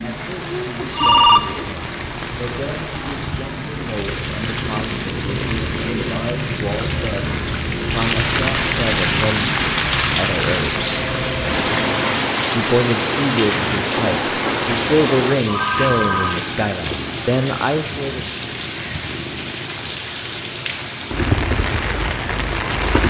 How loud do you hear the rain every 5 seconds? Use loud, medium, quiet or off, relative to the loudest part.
medium, loud, loud, loud, loud.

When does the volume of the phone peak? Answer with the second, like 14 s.
1 s.